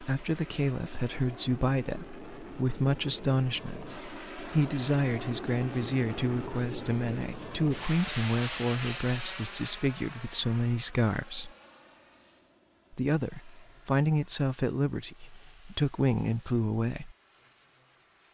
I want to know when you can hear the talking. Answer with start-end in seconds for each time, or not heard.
0.0-11.5, 12.9-17.1.